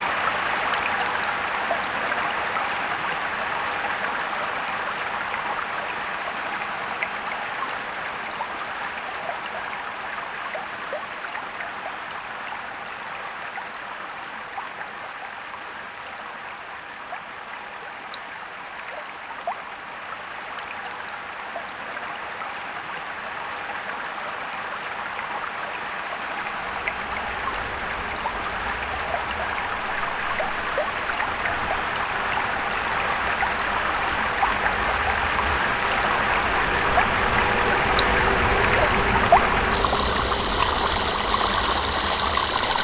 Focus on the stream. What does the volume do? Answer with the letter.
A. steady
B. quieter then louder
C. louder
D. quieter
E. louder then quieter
B.